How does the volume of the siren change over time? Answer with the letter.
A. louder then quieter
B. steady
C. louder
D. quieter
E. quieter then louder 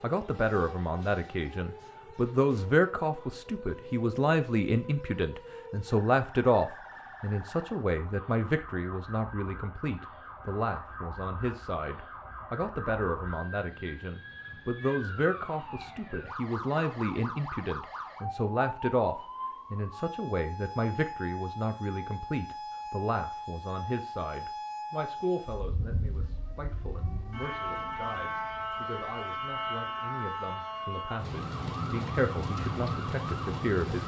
C.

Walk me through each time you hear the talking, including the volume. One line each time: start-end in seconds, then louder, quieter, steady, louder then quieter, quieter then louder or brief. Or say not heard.
0.0-34.0 quieter.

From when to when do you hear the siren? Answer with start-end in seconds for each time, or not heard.
0.0-34.0.